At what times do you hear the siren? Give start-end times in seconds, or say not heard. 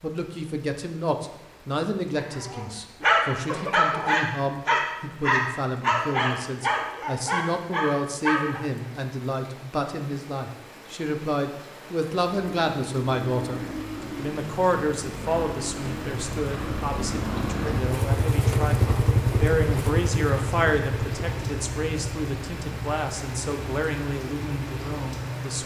not heard.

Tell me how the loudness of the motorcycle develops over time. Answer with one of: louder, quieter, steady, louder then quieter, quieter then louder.
louder then quieter.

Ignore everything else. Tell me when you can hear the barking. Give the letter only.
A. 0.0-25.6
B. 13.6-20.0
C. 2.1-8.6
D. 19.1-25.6
C.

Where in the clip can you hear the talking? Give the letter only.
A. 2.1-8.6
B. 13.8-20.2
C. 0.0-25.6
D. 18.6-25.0
C.